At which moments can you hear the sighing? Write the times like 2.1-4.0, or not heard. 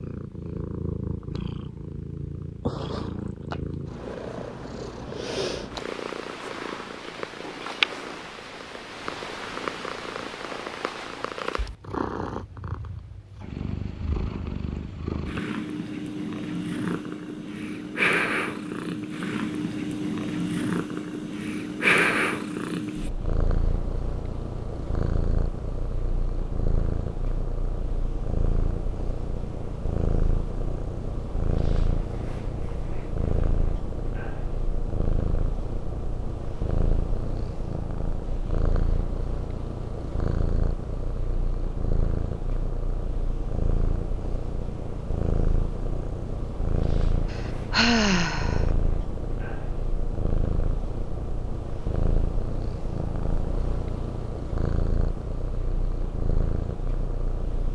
47.3-48.7.